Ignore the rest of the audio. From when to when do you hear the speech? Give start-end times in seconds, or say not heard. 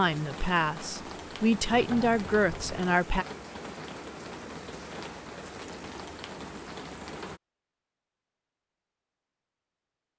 0.0-3.2.